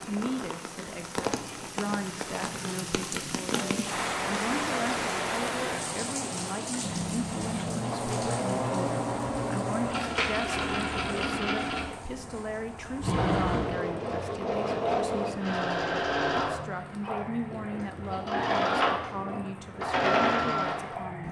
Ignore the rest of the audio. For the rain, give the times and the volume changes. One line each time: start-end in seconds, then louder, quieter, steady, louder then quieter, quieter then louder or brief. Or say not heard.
0.0-21.2 quieter.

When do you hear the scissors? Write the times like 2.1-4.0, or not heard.
6.8-7.8.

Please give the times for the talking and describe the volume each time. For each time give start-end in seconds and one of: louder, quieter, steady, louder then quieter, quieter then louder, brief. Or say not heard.
0.0-21.2 steady.